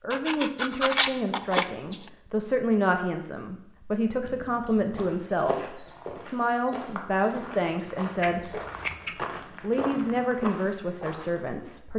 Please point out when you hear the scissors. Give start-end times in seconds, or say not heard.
0.1-2.1, 4.2-5.1, 8.2-9.2.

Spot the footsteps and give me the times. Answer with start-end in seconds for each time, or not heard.
4.8-11.4.